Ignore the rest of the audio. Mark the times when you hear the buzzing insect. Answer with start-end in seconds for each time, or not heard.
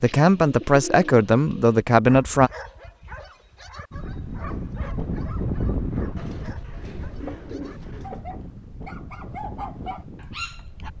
not heard.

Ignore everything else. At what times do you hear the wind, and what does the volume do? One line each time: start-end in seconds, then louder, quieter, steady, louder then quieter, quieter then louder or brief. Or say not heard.
3.9-10.9 quieter.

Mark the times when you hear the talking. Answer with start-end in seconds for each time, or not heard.
0.0-2.5.